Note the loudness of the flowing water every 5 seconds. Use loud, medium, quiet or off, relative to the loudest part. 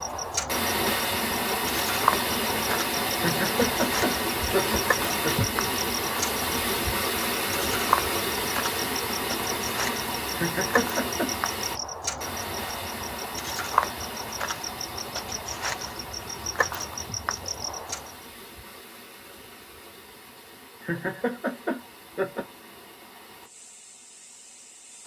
loud, loud, medium, quiet, quiet.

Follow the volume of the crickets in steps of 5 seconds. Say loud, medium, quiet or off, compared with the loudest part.
loud, loud, loud, loud, off.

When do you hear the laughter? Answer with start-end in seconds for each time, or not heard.
3.1-5.5, 10.3-11.3, 20.8-22.4.